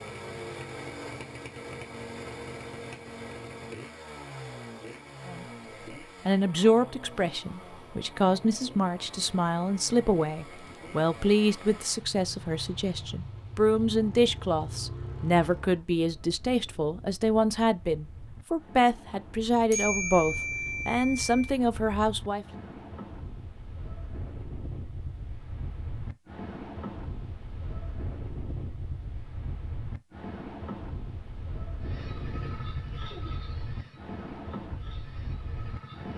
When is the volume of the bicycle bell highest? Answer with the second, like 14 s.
20 s.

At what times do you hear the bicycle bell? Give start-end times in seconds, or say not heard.
19.7-21.5.